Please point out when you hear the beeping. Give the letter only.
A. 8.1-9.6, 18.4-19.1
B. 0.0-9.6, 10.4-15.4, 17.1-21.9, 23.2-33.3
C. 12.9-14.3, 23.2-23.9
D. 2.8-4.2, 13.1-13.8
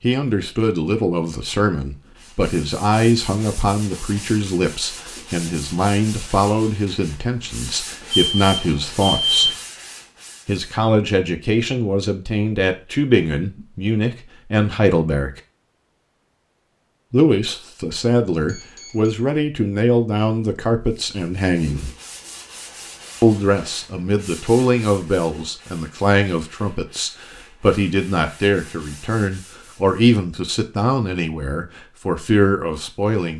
A.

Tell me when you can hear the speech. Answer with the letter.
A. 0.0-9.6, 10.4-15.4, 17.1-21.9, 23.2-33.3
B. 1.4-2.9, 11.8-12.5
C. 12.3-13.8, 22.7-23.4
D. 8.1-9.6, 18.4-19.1
A.